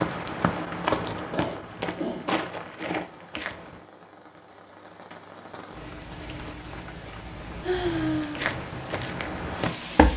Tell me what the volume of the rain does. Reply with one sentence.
The volume of the rain goes up.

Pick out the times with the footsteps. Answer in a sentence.
You can hear the footsteps from 0.0 to 3.8 s and from 8.3 to 10.1 s.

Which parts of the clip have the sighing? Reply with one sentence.
The sighing can be heard from 1.1 to 2.3 s and from 7.6 to 8.5 s.